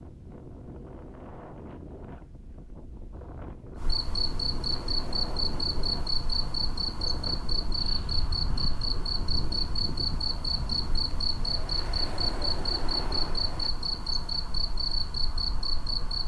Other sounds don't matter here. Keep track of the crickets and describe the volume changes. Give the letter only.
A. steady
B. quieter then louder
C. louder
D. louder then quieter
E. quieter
A.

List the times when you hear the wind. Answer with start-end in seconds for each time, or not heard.
0.0-13.7.